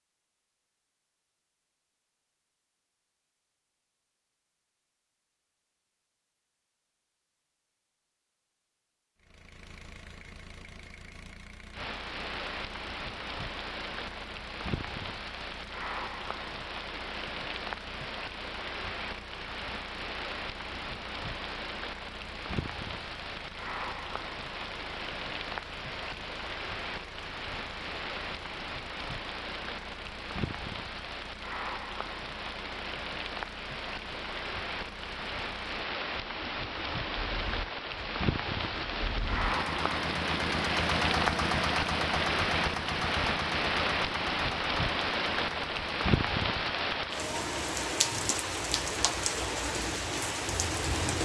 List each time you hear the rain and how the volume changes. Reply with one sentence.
The rain can be heard from 11.7 to 51.2 s, getting louder.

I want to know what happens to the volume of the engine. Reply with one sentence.
The loudness of the engine goes up.